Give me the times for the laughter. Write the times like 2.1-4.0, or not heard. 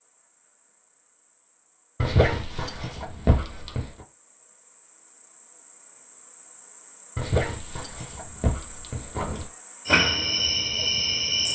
not heard.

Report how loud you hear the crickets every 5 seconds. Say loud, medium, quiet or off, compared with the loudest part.
quiet, medium, loud.